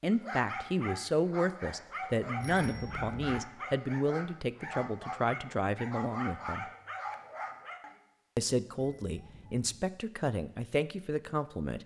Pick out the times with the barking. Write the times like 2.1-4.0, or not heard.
0.1-8.0.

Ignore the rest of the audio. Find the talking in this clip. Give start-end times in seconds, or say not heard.
0.0-6.7, 8.3-11.8.